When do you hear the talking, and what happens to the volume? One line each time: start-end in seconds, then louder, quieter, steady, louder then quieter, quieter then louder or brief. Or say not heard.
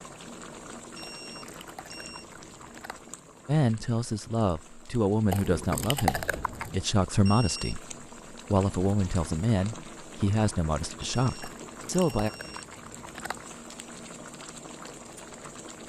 3.5-12.3 steady.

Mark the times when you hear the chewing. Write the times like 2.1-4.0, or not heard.
1.0-3.0, 5.3-6.8, 11.4-13.4.